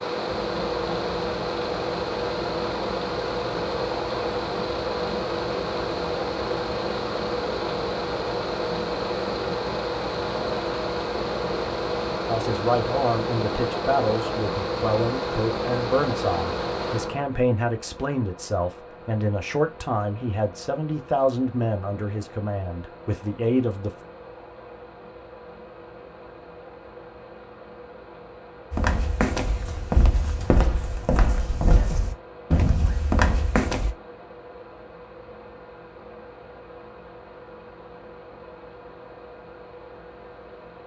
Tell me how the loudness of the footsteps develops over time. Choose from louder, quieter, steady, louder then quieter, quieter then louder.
steady.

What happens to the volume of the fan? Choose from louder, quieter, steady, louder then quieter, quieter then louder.
quieter.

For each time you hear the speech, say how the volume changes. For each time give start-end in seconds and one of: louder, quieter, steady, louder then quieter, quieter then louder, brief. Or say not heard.
12.2-24.0 steady.